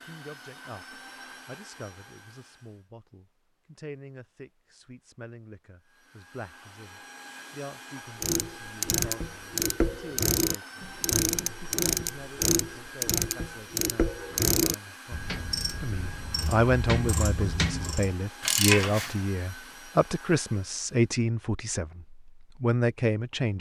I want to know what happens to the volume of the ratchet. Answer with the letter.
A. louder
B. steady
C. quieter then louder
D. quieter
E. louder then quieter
C.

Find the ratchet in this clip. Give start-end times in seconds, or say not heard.
8.2-19.2.